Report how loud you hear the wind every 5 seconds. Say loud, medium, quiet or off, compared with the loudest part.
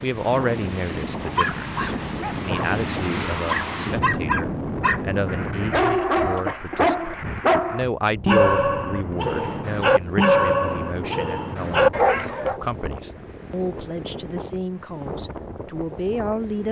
loud, medium, medium, medium.